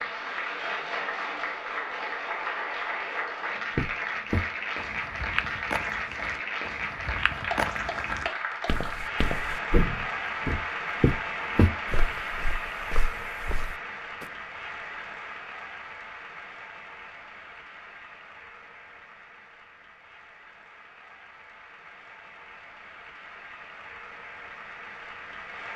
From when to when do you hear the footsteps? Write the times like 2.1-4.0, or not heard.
3.8-14.2.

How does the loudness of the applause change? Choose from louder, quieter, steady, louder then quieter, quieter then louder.
quieter.